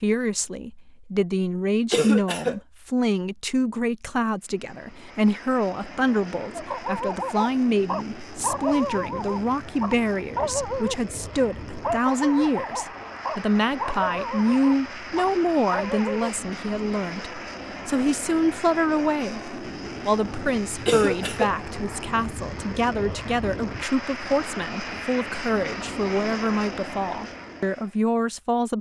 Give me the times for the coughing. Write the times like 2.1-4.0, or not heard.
1.9-2.6, 20.9-21.6.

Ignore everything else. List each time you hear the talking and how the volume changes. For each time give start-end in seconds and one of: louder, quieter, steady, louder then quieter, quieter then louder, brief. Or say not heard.
0.0-28.7 steady.